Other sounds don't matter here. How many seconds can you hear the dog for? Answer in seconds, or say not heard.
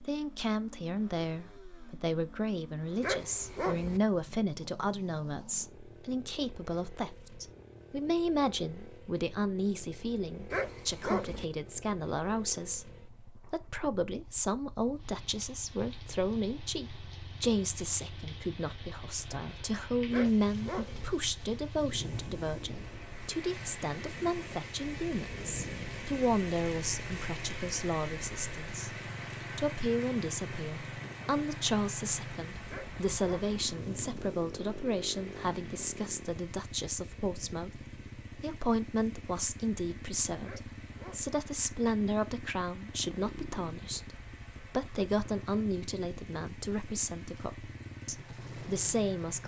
5 s.